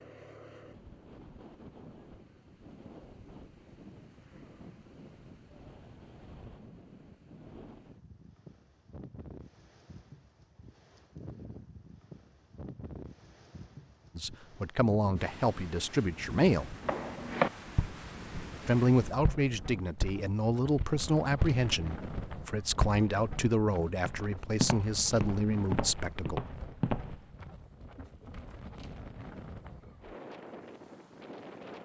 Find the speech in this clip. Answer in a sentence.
You can hear the speech from 14.2 to 16.7 s and from 18.6 to 26.4 s.